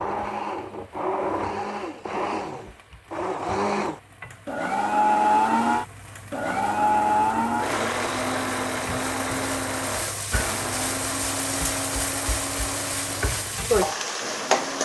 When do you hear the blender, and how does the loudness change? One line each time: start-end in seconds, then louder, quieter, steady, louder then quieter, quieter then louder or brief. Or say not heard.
0.0-14.8 louder then quieter.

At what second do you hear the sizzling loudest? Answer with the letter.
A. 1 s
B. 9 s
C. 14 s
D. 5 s
C.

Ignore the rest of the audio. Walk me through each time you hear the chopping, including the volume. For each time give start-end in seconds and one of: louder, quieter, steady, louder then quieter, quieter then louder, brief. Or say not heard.
not heard.